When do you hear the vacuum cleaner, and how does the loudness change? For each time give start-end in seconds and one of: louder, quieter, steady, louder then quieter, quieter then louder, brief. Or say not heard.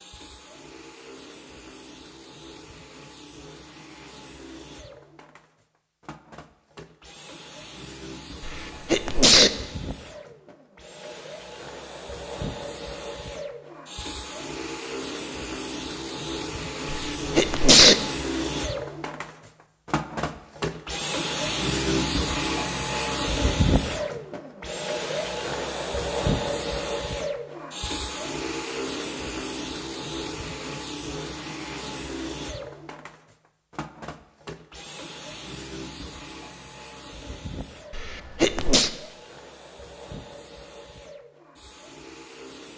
0.0-42.7 louder then quieter.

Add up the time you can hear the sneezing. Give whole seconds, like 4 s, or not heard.
3 s.